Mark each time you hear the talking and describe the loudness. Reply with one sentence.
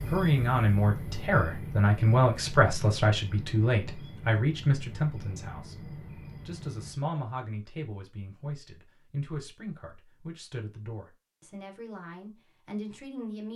The talking can be heard from 0.1 to 13.5 s, getting quieter.